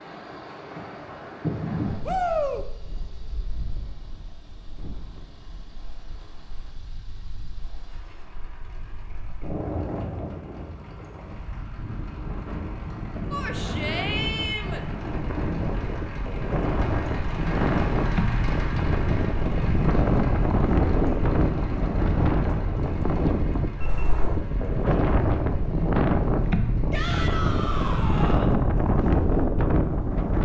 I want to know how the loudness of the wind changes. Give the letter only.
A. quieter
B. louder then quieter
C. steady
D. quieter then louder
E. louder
E.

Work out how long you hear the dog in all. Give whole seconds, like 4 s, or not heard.
not heard.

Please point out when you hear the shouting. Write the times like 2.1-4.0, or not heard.
2.0-2.6, 13.3-14.8, 26.9-28.6.